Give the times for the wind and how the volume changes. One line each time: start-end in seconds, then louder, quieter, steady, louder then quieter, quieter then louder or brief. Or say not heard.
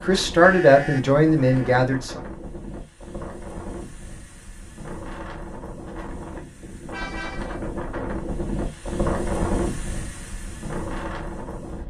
0.0-11.8 louder.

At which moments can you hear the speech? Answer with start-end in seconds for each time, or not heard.
0.0-2.2.